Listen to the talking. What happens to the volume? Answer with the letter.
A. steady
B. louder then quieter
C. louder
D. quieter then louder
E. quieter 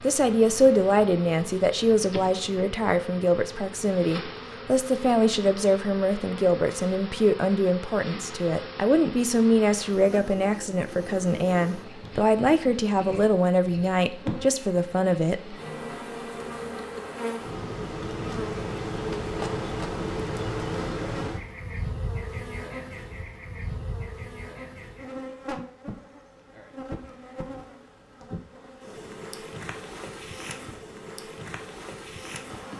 A.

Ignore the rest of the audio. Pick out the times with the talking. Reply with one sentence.
You can hear the talking from 0.0 to 15.6 s.